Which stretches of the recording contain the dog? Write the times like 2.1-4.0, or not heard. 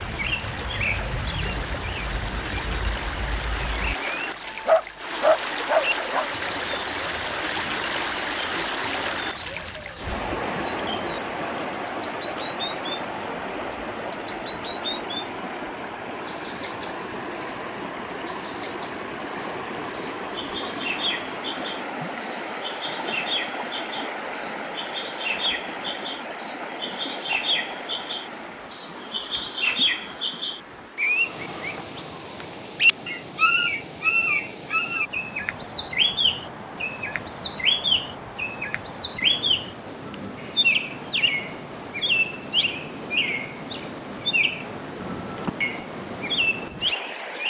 4.5-6.3.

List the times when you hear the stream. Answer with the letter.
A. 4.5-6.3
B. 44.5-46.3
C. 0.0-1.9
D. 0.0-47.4
D.